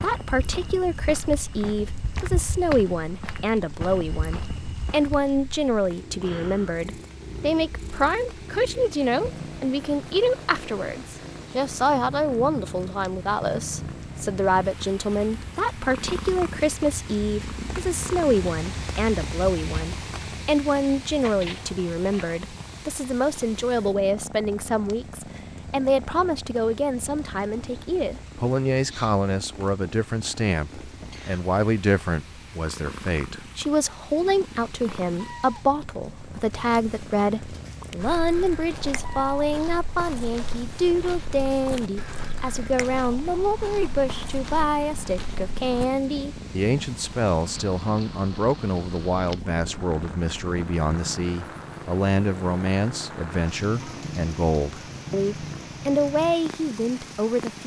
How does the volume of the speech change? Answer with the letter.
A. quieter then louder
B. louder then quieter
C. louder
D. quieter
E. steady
E.